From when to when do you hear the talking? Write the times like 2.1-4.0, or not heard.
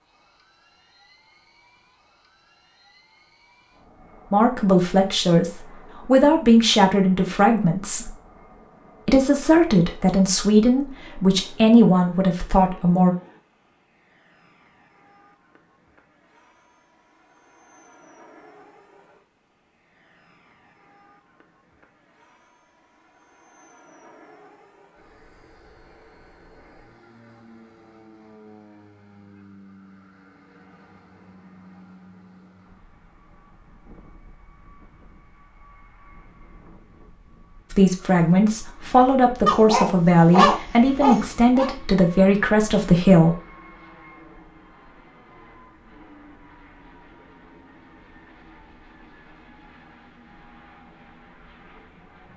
4.3-8.1, 9.1-13.2, 37.7-43.4.